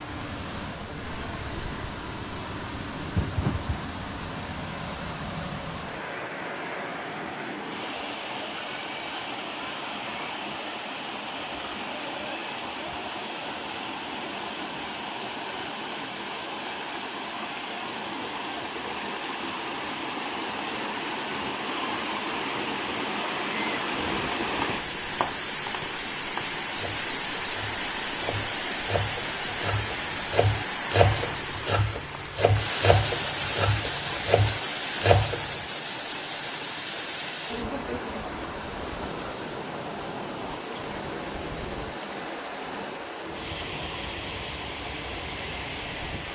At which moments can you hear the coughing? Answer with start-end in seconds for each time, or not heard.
3.1-3.8.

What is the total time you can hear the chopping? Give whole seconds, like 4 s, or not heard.
12 s.